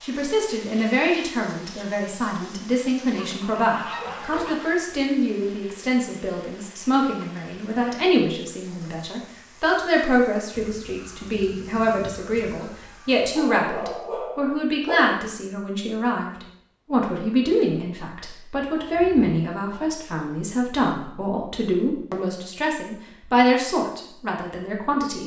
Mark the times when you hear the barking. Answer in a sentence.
The barking can be heard from 4.0 to 4.5 s and from 13.3 to 15.2 s.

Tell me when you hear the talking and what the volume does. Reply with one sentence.
The talking can be heard from 0.0 to 25.2 s, at a steady volume.